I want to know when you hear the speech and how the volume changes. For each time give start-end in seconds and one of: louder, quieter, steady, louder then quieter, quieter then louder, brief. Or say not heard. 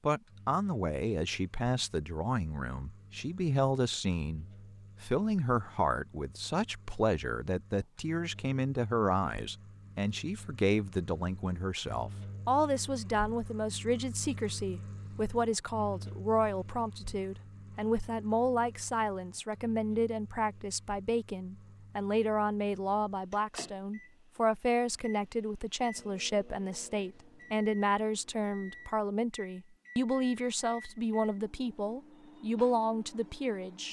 0.0-33.8 steady.